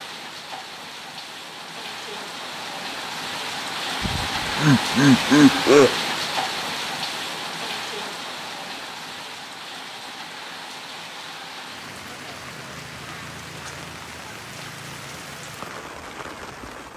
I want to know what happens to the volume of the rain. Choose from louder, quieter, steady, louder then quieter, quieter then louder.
louder then quieter.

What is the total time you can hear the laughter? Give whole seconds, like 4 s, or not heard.
2 s.